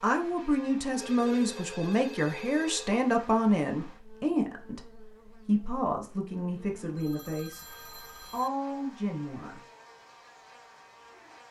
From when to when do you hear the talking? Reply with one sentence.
The talking can be heard from 0.0 to 9.6 s.